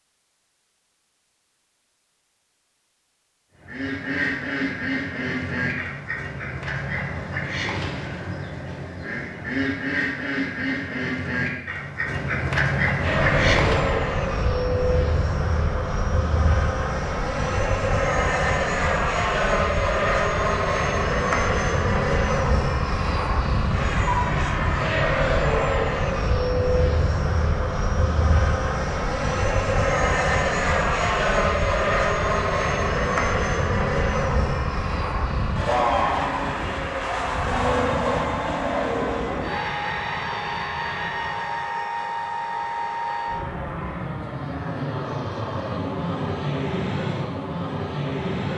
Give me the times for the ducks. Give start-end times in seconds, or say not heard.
3.6-14.1.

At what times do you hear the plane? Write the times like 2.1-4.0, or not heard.
13.0-48.5.